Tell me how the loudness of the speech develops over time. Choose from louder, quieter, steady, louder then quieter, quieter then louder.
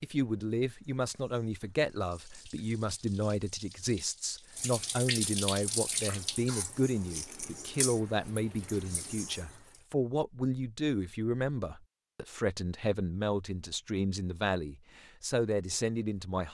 steady.